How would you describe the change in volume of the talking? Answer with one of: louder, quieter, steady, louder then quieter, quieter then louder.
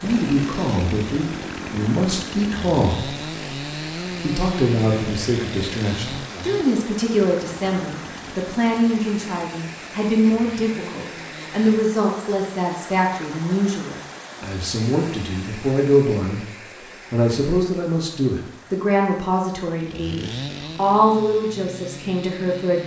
steady.